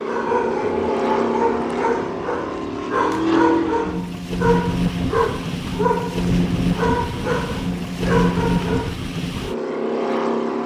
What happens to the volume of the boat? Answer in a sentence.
The volume of the boat stays about the same.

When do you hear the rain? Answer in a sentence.
You can't hear the rain here.